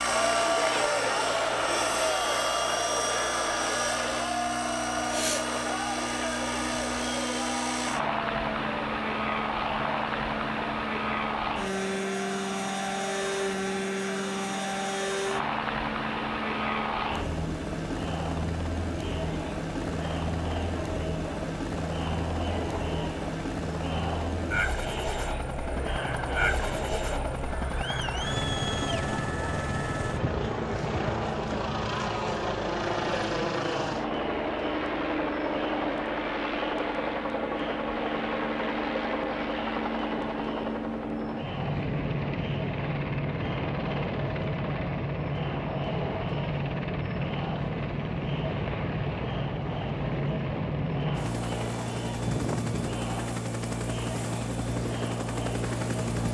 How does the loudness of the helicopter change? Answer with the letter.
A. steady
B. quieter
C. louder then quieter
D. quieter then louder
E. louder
A.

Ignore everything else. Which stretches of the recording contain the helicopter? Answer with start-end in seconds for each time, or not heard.
0.0-56.2.